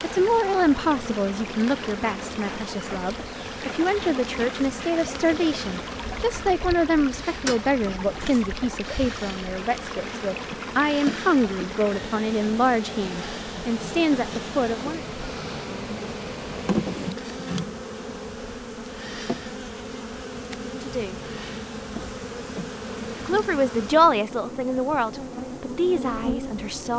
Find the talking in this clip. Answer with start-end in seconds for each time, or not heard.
0.0-15.1, 20.6-21.2, 23.2-26.9.